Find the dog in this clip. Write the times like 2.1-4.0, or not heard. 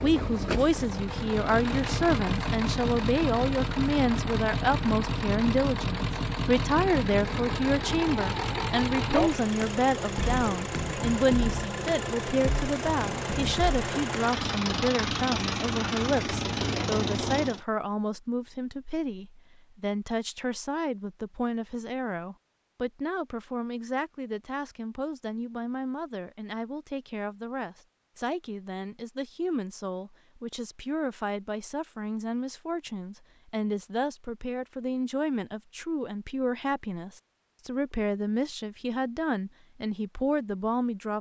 not heard.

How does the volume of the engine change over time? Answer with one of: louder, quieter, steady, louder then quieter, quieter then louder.
steady.